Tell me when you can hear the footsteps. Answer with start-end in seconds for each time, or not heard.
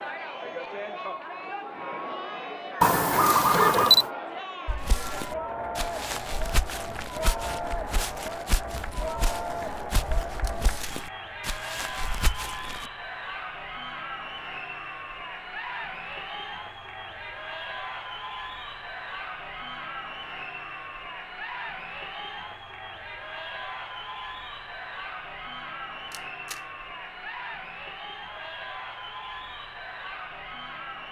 4.7-12.8.